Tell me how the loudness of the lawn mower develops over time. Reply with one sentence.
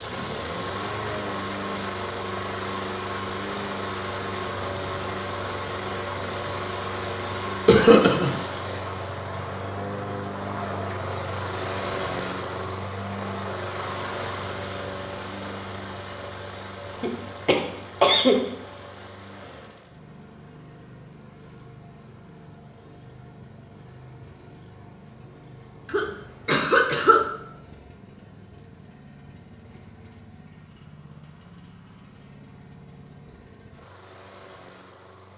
The volume of the lawn mower goes down.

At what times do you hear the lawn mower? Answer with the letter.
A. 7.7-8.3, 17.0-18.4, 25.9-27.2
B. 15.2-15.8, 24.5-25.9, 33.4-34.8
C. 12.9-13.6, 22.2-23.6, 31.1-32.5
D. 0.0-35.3
D.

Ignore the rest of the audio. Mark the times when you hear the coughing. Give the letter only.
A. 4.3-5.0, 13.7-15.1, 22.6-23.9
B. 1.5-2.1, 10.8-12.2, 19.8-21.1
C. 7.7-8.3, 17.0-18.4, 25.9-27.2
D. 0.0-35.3
C.